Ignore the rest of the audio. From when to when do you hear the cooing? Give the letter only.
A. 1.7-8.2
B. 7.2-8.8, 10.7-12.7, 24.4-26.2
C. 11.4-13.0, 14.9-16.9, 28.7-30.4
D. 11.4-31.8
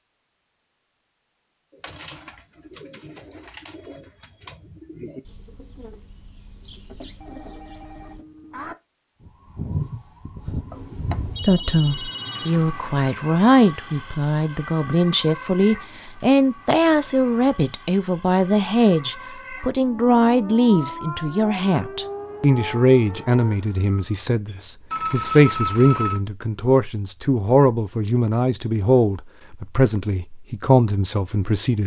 A.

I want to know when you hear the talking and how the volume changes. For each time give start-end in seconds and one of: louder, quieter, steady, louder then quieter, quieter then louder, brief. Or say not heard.
11.4-31.8 steady.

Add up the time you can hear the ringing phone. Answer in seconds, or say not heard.
5 s.